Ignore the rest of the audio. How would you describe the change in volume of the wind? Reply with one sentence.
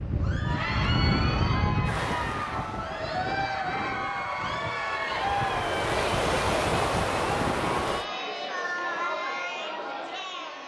The volume of the wind goes down, then up.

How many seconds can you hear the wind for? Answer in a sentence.
You can hear the wind for 8 seconds altogether.